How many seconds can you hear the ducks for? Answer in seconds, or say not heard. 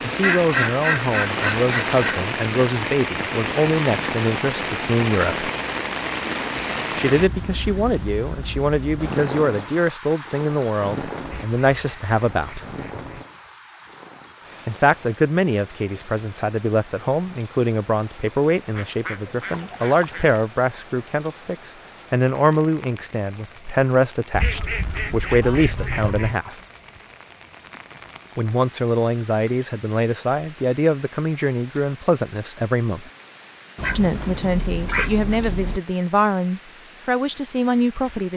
10 s.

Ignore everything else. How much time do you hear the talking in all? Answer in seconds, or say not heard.
32 s.